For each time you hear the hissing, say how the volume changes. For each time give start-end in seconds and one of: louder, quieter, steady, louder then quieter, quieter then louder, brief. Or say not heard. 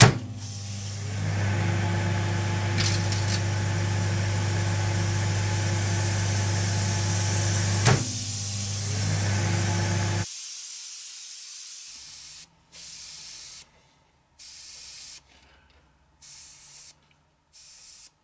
0.2-18.1 louder then quieter.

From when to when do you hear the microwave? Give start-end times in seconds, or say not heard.
0.0-10.2.